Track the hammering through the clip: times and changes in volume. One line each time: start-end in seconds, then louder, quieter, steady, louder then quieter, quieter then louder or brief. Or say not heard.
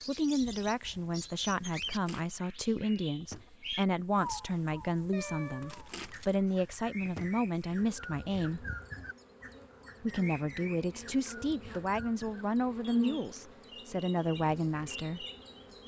not heard.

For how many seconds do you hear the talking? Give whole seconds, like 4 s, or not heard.
14 s.